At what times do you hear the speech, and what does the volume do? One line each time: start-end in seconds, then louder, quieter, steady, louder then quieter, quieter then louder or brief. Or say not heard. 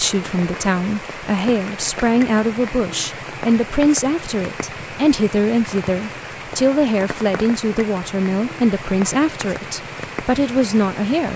0.0-11.3 steady.